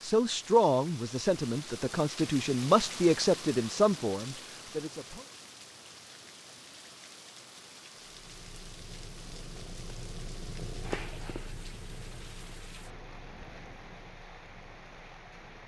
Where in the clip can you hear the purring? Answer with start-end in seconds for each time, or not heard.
8.0-15.6.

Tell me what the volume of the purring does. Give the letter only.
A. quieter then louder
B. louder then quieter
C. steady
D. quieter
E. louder
B.